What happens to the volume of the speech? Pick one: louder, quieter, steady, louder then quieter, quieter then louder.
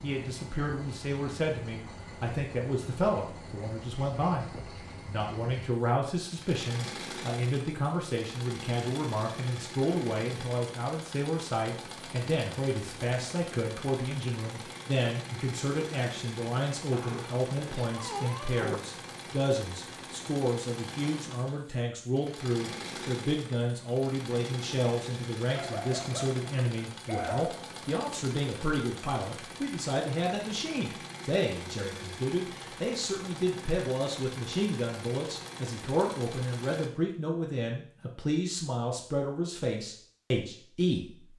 steady.